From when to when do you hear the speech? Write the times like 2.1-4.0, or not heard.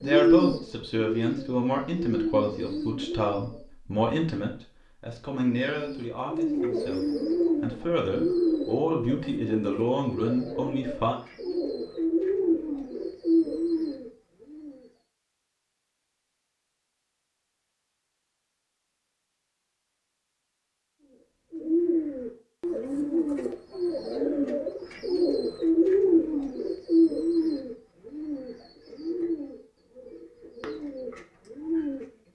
0.0-11.2.